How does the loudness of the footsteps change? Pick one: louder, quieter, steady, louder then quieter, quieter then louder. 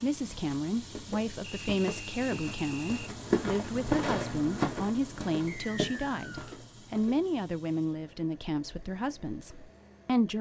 louder then quieter.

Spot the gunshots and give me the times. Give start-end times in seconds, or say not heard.
4.0-4.5.